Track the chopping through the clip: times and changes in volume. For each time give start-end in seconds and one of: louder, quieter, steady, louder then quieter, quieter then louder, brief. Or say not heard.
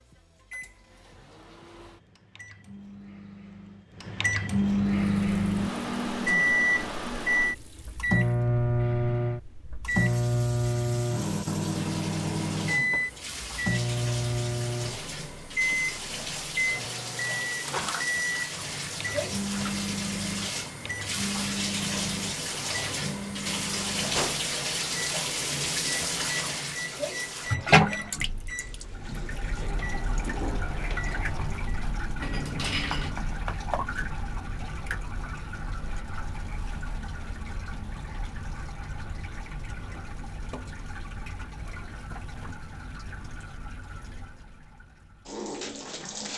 not heard.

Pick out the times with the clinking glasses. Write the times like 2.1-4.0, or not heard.
32.2-33.1.